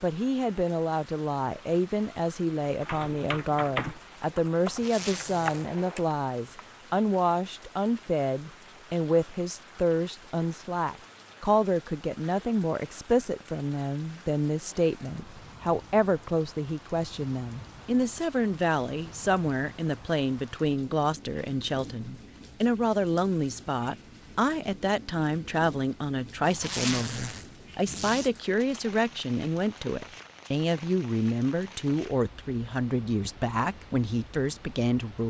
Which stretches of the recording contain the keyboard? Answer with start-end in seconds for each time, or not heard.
2.9-6.6.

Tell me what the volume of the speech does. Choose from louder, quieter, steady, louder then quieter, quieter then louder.
steady.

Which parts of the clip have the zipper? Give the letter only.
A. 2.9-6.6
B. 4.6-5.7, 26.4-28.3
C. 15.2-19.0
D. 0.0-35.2
B.